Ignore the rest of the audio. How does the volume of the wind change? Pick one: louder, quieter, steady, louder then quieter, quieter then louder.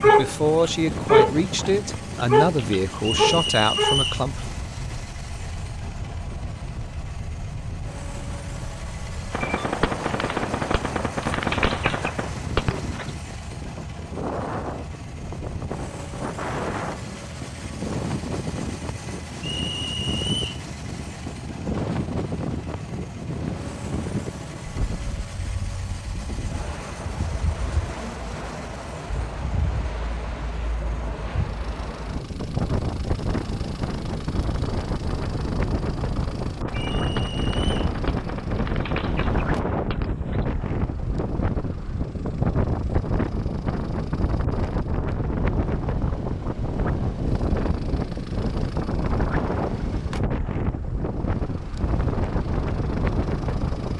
louder.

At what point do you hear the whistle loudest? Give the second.
4 s.